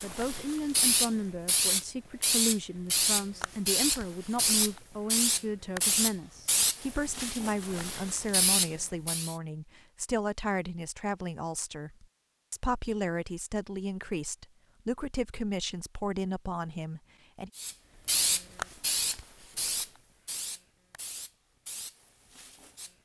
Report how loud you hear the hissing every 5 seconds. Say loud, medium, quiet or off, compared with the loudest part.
loud, loud, off, loud, quiet.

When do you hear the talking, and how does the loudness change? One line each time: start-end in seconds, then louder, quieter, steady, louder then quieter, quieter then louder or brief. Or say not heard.
0.0-17.5 steady.